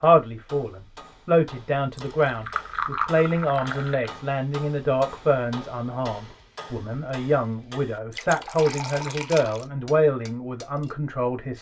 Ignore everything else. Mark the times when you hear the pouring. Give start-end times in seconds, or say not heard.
1.9-4.1, 8.1-9.7.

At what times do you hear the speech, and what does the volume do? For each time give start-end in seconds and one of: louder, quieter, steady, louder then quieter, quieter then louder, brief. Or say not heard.
0.0-11.5 steady.